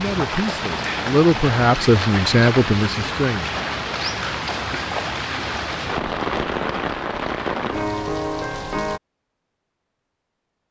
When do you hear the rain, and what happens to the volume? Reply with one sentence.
You can hear the rain from 0.0 to 9.0 s, at a steady volume.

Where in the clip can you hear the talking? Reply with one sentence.
You can hear the talking from 0.0 to 3.5 s.